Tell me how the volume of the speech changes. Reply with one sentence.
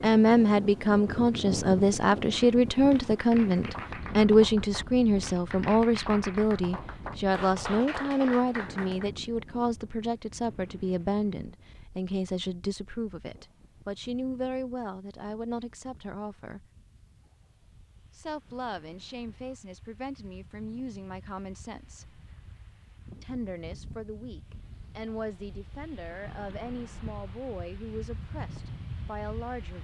The volume of the speech goes down.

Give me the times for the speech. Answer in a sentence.
You can hear the speech from 0.0 to 16.6 s, from 18.1 to 22.2 s and from 23.2 to 29.7 s.